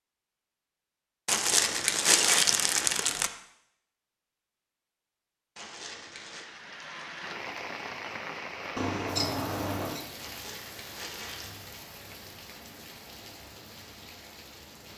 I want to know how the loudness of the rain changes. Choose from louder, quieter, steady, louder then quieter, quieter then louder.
quieter.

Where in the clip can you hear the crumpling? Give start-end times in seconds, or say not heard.
1.2-3.3, 5.5-6.5, 10.2-11.5.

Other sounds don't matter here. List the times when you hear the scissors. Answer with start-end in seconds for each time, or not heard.
8.8-10.0.